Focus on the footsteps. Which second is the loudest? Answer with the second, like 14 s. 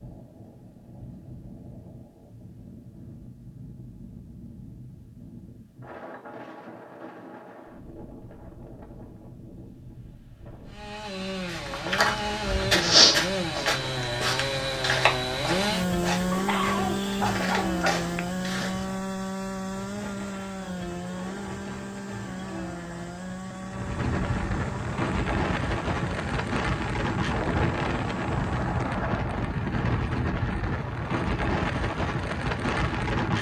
13 s.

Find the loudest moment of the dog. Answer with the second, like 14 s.
17 s.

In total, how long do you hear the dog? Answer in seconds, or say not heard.
2 s.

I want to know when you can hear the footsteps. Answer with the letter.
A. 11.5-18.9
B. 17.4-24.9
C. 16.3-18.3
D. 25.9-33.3
A.